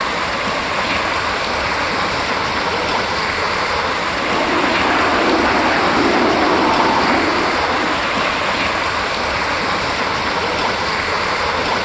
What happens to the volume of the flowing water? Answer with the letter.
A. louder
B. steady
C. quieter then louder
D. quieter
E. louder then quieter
B.